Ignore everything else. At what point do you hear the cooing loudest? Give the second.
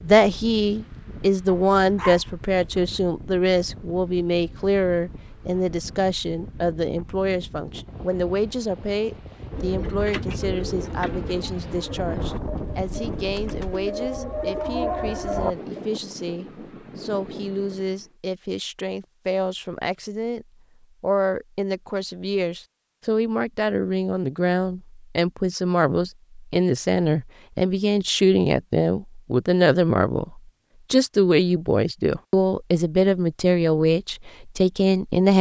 15 s.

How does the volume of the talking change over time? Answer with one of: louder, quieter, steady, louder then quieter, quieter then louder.
quieter then louder.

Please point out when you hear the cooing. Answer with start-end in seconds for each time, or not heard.
9.5-15.9.